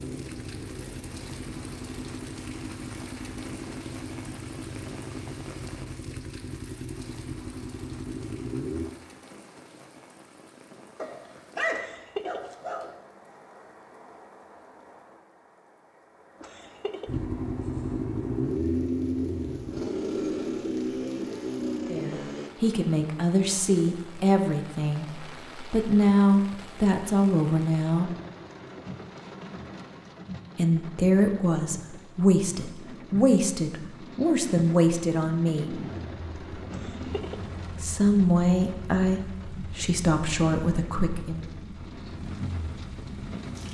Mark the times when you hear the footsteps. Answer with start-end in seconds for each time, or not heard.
not heard.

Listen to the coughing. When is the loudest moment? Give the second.
12 s.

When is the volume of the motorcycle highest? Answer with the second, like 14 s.
19 s.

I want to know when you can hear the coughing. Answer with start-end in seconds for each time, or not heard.
11.7-12.6, 16.4-17.2, 36.7-37.5.